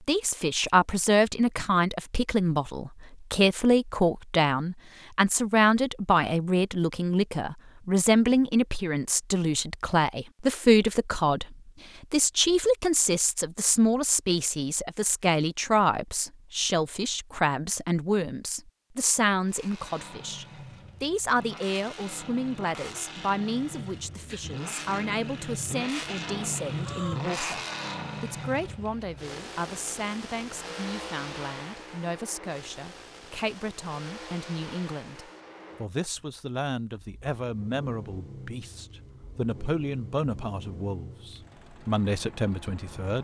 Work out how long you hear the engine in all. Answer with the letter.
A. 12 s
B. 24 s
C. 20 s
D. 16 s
B.